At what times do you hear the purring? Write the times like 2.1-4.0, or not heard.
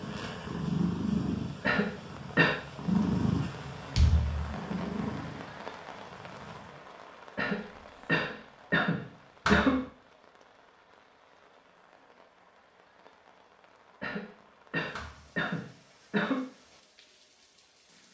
0.0-6.8.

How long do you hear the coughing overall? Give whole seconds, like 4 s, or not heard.
6 s.